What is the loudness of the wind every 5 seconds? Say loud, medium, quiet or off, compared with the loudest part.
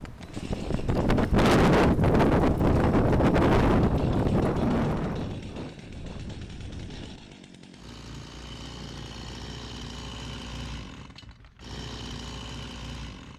loud, quiet, off.